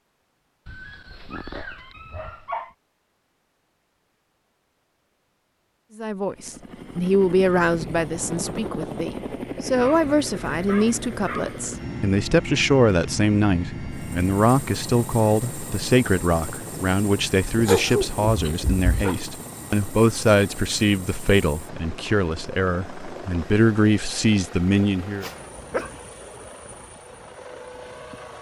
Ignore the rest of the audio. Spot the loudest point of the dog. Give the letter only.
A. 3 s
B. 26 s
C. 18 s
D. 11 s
C.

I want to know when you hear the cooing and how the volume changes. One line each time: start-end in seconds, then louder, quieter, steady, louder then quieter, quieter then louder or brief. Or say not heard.
not heard.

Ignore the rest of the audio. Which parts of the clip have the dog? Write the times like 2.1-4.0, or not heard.
0.7-2.7, 9.8-11.7, 17.6-19.1, 25.2-26.0.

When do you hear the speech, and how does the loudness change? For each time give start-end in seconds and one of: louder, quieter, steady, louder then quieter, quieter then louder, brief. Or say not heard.
6.0-25.3 steady.